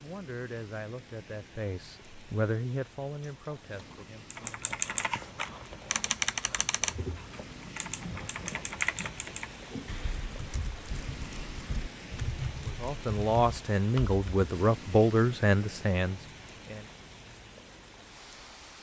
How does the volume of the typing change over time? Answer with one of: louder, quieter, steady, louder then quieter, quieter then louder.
quieter then louder.